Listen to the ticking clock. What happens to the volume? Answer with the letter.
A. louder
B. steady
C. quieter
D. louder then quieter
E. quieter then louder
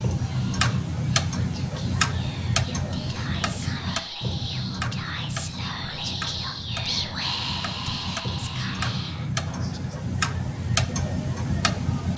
E.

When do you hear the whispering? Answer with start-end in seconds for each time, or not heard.
0.1-10.1.